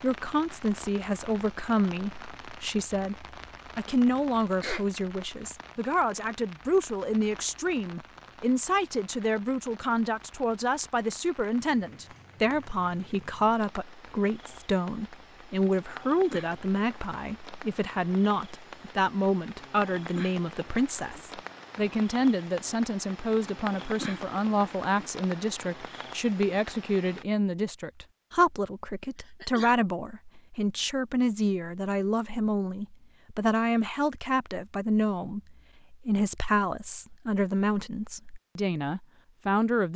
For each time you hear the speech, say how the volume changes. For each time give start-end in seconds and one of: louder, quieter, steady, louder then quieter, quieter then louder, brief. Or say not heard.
0.0-39.9 steady.